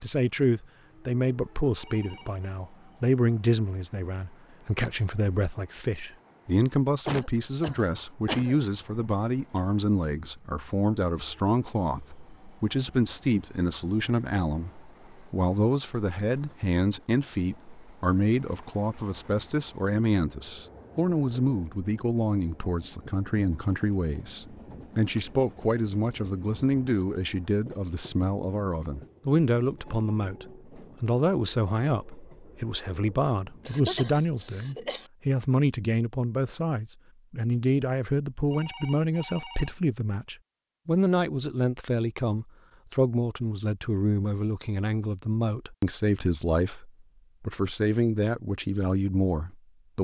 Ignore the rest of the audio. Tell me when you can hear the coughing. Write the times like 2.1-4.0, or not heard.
7.0-8.6, 33.6-35.1.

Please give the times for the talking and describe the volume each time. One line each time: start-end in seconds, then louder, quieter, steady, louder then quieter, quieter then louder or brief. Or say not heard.
0.0-49.9 steady.